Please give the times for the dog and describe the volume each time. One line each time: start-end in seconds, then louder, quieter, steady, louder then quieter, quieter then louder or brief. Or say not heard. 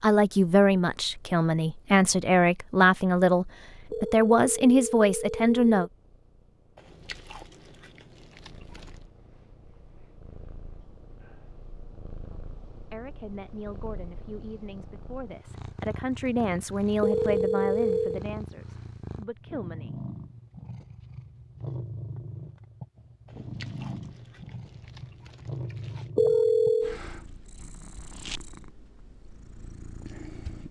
not heard.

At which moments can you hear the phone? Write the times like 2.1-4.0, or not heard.
3.9-5.8, 17.0-18.2, 26.1-27.0.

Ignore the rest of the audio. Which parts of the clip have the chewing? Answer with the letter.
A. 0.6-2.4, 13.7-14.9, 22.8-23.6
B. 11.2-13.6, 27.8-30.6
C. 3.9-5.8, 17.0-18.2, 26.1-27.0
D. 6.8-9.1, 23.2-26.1
D.